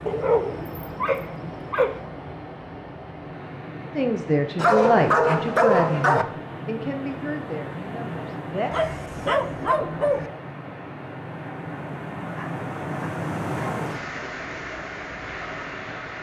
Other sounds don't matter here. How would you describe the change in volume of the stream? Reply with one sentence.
The volume of the stream goes up.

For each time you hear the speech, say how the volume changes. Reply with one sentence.
The speech can be heard from 3.9 to 8.8 s, getting quieter.